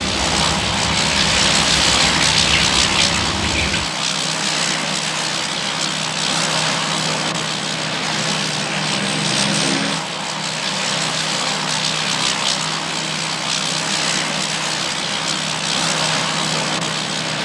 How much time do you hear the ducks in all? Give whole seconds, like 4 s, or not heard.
4 s.